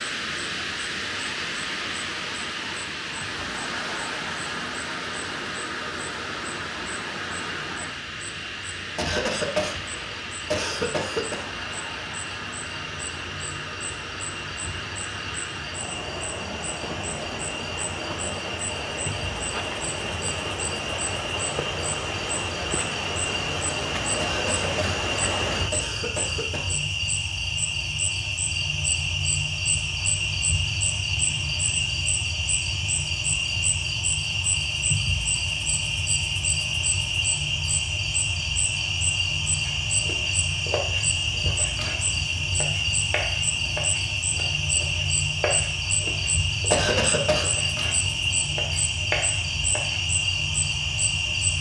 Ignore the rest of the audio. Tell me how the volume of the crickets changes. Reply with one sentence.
The volume of the crickets goes up.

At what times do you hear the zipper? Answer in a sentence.
You can't hear the zipper here.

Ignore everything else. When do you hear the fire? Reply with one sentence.
The fire can't be heard in this clip.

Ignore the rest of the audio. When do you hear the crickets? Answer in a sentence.
The crickets can be heard from 0.0 to 51.5 s.